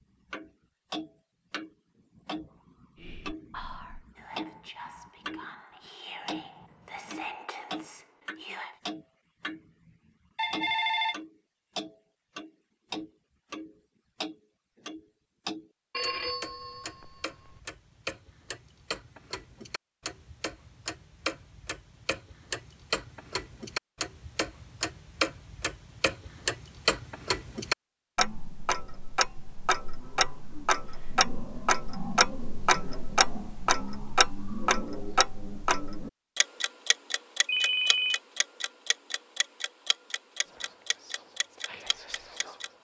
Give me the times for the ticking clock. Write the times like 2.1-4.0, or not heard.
0.3-5.5, 6.2-42.7.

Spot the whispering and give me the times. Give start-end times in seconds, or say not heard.
3.0-8.8, 40.4-42.7.